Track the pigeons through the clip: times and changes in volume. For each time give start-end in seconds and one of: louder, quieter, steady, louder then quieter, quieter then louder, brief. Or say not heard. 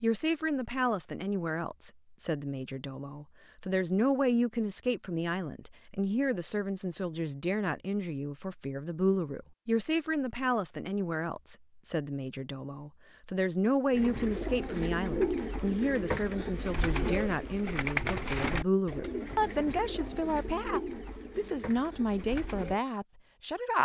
13.9-22.8 quieter.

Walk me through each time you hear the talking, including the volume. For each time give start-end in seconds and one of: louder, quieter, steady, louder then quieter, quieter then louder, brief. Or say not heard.
0.0-23.7 steady.